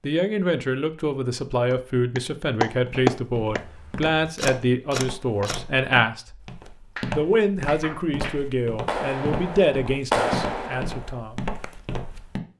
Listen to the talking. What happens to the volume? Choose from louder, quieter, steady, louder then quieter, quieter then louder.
steady.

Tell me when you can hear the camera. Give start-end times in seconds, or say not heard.
3.6-5.5.